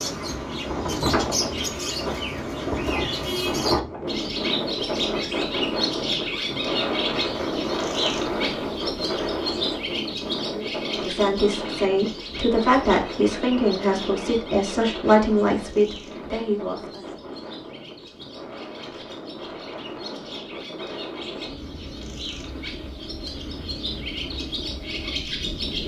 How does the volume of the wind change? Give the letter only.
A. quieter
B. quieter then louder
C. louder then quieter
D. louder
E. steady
A.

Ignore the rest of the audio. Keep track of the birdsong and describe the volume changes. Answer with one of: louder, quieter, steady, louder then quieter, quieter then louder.
quieter then louder.